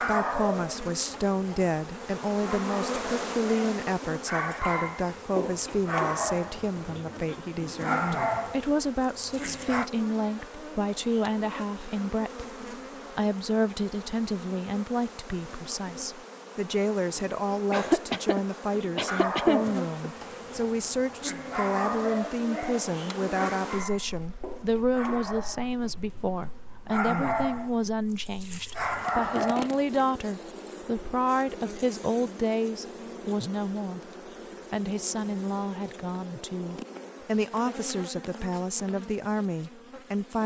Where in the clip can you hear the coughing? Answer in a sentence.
You can hear the coughing from 17.7 to 20.1 s.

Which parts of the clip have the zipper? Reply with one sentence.
You can't hear the zipper here.